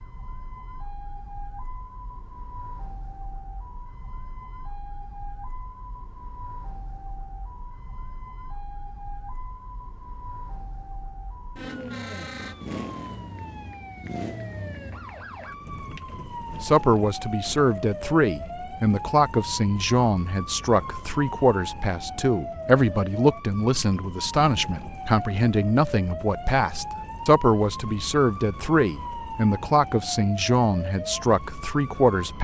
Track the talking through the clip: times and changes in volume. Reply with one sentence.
The talking can be heard from 16.6 to 32.3 s, at a steady volume.